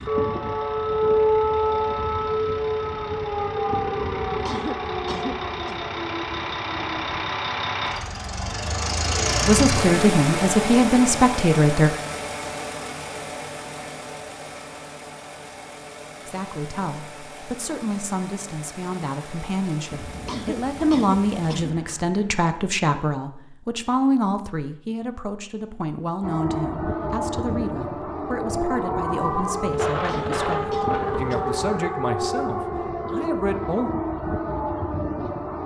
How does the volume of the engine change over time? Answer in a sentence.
The volume of the engine goes up, then down.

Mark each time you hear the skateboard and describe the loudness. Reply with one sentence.
The skateboard can't be heard in this clip.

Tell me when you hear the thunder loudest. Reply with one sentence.
The loudest moment of the thunder is at 30 seconds.